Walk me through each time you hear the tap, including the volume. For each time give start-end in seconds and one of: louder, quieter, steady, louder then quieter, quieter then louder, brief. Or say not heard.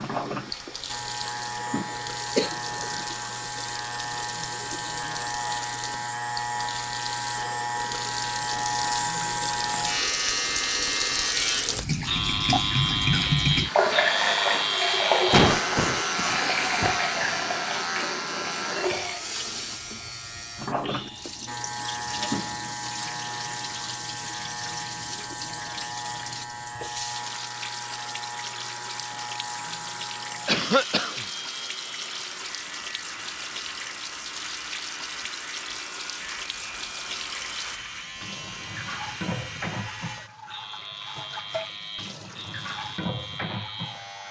0.0-44.2 louder then quieter.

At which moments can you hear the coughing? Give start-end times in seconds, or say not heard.
2.4-3.1, 15.3-16.9, 30.4-31.2.